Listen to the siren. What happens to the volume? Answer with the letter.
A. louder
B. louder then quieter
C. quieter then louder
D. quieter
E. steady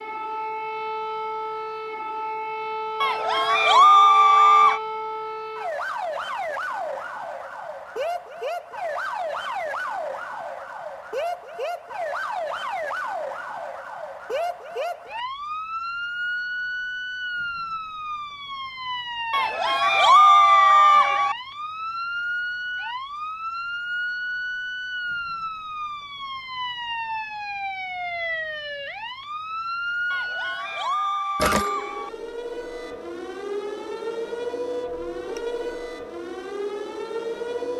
E.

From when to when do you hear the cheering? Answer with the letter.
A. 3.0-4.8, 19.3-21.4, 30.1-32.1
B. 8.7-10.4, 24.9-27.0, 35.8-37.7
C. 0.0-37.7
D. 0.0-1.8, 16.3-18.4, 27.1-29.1
A.